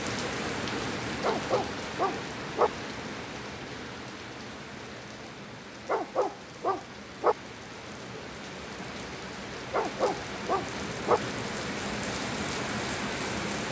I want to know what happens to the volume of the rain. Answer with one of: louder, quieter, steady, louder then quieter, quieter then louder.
quieter then louder.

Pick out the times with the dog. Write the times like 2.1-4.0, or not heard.
1.2-2.7, 5.8-7.3, 9.7-11.2.